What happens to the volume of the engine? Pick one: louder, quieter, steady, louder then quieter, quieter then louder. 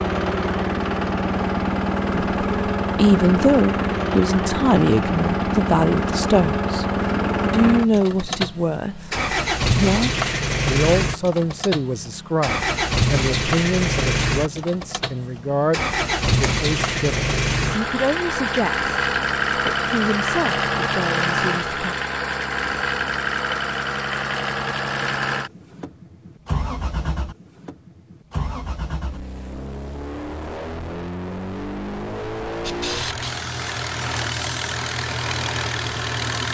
quieter.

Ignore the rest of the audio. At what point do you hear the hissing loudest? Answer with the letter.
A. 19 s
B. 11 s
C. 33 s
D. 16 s
C.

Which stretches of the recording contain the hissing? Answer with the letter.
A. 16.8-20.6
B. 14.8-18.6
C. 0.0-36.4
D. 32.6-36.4
D.